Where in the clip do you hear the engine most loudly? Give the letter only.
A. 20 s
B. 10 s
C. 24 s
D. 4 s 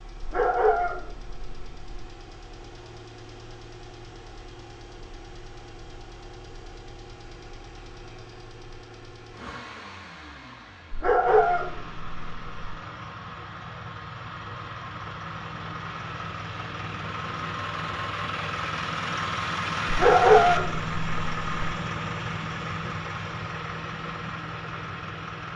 A.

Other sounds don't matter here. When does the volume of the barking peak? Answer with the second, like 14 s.
20 s.